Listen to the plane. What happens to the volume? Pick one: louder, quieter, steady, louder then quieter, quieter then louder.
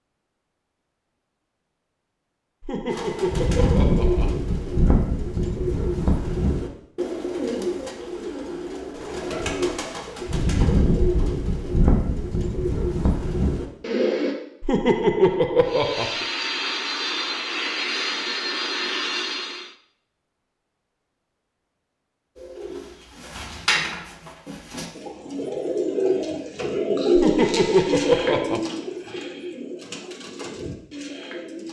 steady.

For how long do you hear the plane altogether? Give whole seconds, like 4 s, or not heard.
4 s.